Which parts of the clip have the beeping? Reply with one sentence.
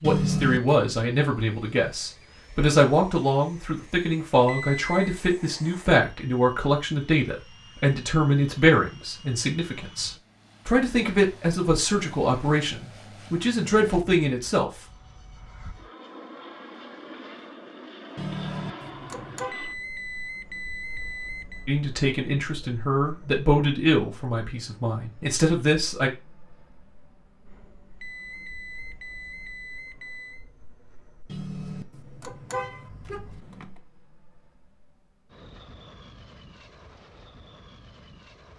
The beeping can be heard from 4.5 to 5.0 s, from 19.5 to 21.7 s and from 28.0 to 30.4 s.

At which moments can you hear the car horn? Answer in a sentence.
You can hear the car horn from 0.0 to 0.8 s, from 18.1 to 19.6 s and from 31.2 to 33.7 s.